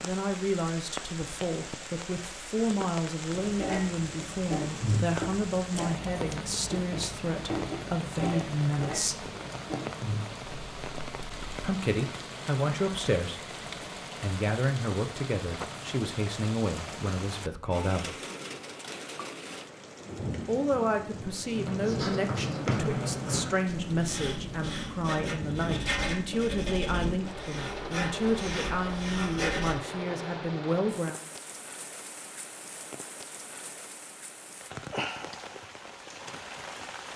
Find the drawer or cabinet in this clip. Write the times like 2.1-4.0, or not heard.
not heard.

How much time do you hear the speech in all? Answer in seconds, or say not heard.
26 s.